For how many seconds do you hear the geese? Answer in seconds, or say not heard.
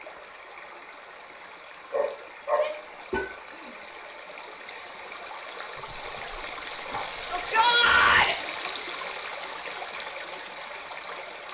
not heard.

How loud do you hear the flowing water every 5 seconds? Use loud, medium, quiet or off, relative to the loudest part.
medium, loud, loud.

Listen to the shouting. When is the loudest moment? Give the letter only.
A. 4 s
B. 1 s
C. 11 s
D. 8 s
D.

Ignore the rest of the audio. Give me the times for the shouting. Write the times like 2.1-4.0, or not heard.
2.5-4.0, 7.3-8.3.